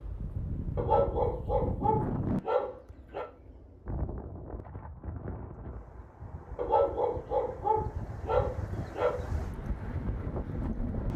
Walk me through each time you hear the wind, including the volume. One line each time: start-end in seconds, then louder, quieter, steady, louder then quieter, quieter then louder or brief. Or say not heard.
0.0-11.1 quieter then louder.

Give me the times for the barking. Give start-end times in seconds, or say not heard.
0.8-3.2, 6.5-9.2.